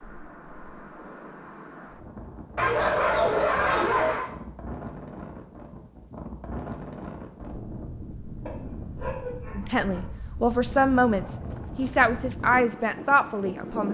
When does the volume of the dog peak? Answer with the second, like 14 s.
3 s.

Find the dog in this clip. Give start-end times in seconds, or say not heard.
2.5-4.3, 8.4-10.1.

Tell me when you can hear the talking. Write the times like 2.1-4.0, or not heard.
9.6-13.8.